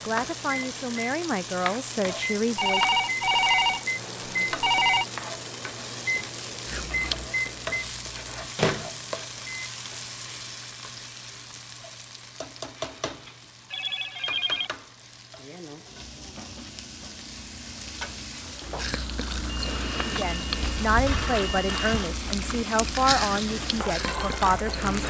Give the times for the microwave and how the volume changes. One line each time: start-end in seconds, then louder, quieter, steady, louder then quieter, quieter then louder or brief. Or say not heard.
0.0-9.4 louder.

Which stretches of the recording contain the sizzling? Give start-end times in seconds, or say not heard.
0.0-25.0.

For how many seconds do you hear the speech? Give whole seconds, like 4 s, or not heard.
8 s.